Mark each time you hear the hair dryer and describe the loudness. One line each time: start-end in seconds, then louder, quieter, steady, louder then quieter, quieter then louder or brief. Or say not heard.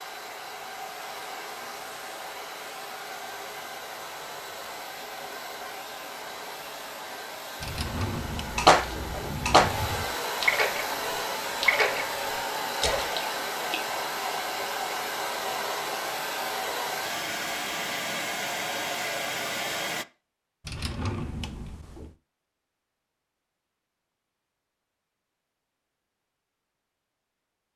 0.0-20.1 louder.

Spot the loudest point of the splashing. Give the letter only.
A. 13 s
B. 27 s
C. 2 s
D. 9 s
D.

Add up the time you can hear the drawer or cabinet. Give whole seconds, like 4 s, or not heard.
4 s.